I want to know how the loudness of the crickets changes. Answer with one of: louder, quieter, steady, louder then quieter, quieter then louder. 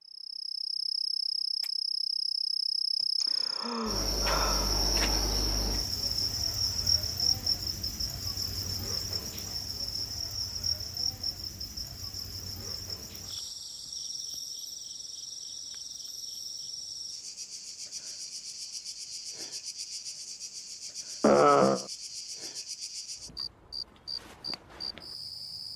quieter.